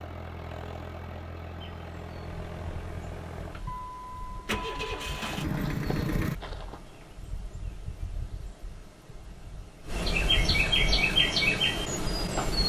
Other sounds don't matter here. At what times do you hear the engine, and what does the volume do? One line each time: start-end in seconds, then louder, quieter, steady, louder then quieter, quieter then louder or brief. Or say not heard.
0.0-6.3 louder.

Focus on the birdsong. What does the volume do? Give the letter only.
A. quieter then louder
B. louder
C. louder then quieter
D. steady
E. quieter
B.